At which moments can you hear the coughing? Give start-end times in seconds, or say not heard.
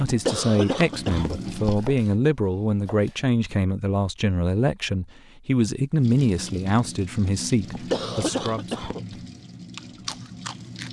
0.1-2.0, 7.7-9.2.